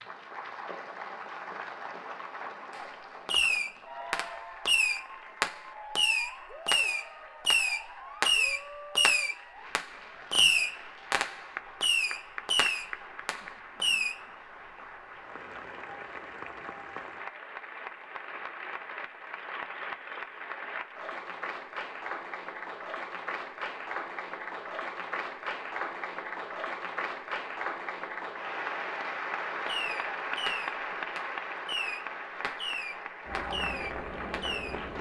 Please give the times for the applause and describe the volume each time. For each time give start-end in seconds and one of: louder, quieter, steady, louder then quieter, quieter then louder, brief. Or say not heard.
0.0-34.9 louder.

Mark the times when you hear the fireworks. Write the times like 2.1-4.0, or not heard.
2.7-14.2, 29.6-34.8.